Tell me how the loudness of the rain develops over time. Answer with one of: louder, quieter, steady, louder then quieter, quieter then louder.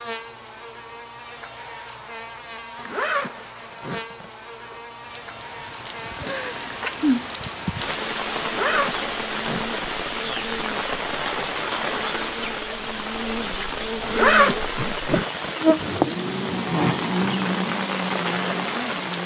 steady.